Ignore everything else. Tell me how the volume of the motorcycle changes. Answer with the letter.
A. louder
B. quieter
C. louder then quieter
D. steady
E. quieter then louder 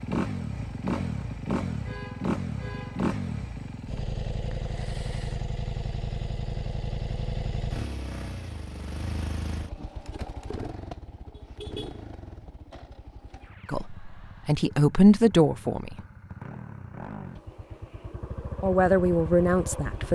E.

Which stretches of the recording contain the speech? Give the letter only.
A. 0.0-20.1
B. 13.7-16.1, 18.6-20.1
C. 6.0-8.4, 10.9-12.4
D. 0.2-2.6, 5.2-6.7
B.